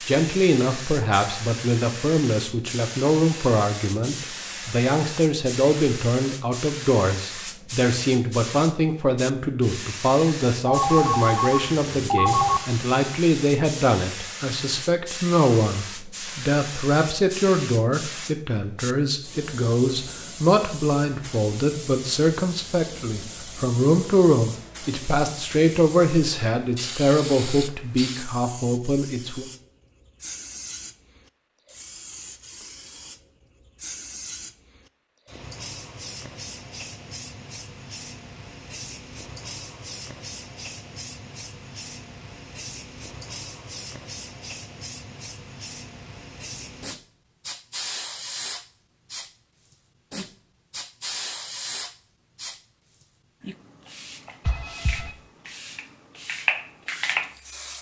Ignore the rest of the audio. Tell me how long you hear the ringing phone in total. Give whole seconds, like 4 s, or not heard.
3 s.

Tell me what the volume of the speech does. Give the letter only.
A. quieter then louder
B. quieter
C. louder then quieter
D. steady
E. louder
D.